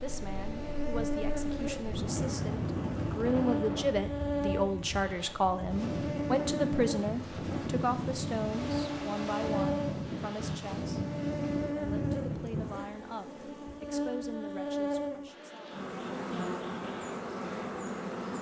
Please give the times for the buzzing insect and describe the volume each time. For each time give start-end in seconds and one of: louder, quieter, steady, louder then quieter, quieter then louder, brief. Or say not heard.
0.0-18.3 steady.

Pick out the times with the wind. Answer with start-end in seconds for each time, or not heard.
0.0-12.7.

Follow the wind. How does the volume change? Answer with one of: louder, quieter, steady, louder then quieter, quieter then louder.
steady.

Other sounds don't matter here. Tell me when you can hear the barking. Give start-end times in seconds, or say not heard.
not heard.